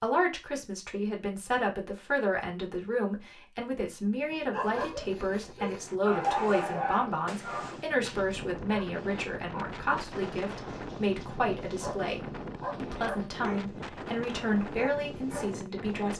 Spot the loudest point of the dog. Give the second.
6 s.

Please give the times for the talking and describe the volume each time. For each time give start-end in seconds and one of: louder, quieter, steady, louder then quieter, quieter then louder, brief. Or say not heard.
0.0-16.1 steady.